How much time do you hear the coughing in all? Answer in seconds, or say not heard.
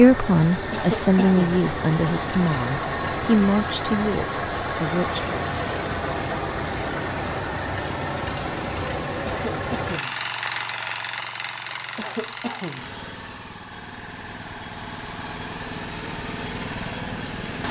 3 s.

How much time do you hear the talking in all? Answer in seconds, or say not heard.
5 s.